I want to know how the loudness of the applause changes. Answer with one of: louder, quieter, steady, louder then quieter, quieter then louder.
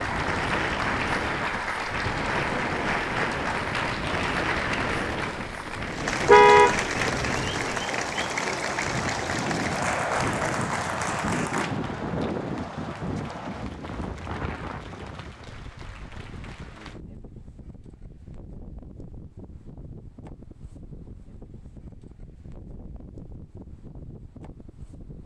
quieter.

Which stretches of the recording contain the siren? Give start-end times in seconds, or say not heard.
not heard.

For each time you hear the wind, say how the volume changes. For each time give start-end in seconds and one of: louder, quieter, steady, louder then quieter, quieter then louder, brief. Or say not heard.
0.0-25.2 quieter.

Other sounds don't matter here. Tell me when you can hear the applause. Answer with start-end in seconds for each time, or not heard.
0.0-17.0.